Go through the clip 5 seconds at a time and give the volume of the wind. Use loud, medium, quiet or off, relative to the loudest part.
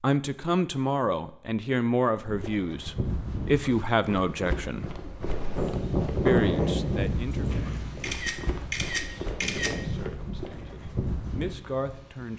off, loud, quiet.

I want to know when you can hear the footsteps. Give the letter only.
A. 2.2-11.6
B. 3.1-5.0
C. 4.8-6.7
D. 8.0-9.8
A.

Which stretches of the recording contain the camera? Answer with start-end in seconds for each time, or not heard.
8.0-9.8.